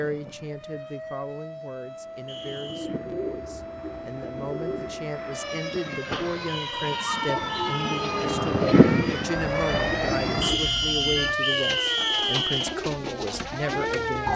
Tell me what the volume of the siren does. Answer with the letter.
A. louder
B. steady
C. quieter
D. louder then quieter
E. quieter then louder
A.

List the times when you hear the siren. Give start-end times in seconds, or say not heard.
0.0-14.3.